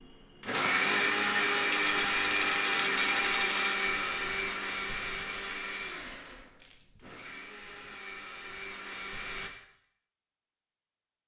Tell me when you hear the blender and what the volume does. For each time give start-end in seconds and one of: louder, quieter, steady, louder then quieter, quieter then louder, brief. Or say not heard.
0.0-9.5 quieter.